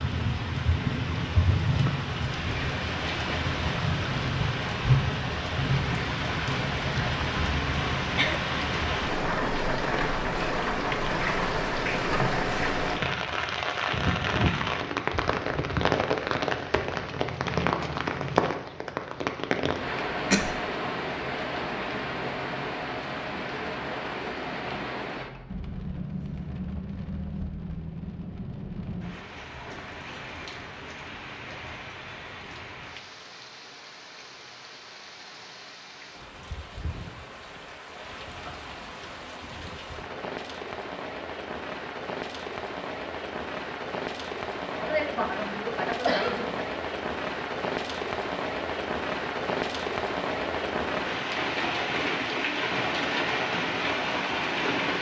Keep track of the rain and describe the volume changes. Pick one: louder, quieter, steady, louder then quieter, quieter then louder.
quieter then louder.